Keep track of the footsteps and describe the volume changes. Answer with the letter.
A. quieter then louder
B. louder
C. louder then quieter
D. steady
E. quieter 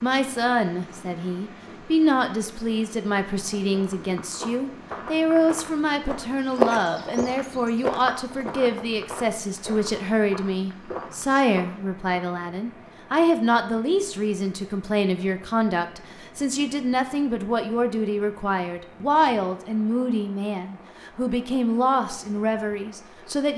C.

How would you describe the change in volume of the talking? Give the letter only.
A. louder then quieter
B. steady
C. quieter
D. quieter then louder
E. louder
B.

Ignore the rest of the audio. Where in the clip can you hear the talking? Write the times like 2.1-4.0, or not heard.
0.0-23.5.